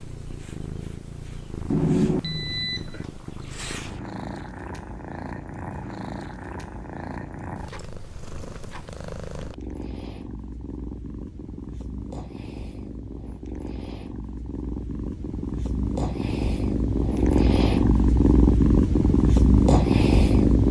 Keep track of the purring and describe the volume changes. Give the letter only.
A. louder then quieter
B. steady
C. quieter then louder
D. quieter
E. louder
E.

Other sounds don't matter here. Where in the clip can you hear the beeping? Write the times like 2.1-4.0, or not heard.
1.7-3.0.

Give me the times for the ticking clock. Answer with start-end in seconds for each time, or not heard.
not heard.